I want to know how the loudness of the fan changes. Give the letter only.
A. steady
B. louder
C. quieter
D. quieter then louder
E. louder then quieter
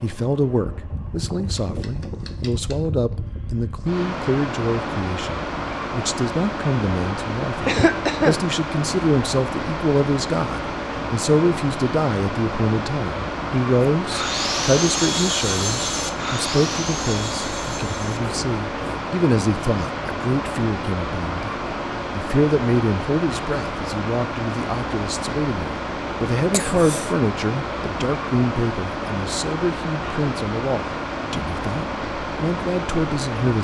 A.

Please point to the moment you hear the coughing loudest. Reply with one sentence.
The loudest moment of the coughing is at 8 seconds.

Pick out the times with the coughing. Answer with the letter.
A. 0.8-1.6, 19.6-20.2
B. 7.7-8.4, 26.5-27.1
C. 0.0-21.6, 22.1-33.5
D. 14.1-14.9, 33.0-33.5
B.